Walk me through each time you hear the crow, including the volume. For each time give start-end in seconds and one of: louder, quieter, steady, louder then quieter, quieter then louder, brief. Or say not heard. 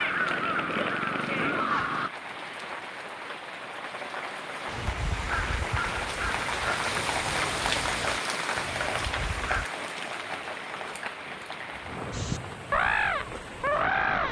0.0-2.1 brief
4.7-9.7 quieter
12.1-14.2 brief.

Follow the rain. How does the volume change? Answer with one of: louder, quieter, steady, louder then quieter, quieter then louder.
louder then quieter.